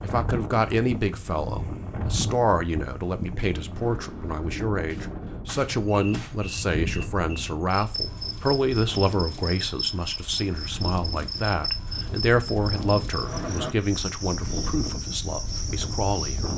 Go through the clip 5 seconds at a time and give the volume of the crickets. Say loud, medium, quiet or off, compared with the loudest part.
off, loud, loud, loud.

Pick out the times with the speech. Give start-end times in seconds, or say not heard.
0.0-16.5.